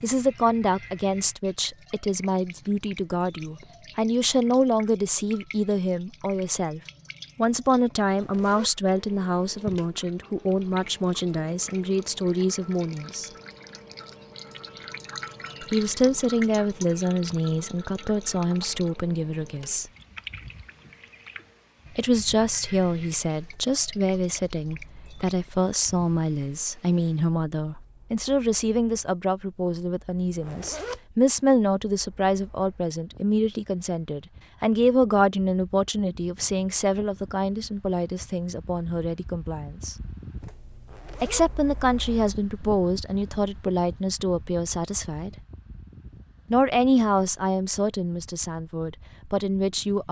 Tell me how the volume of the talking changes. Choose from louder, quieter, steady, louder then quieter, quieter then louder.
steady.